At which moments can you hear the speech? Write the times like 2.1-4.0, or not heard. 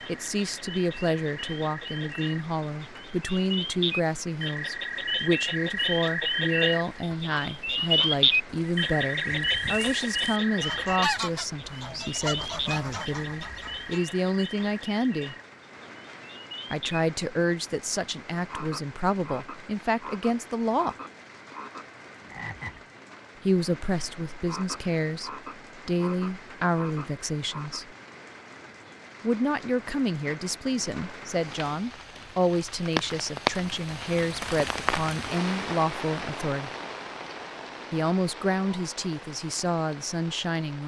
0.1-15.3, 16.7-20.9, 23.4-27.9, 29.2-36.7, 37.9-40.8.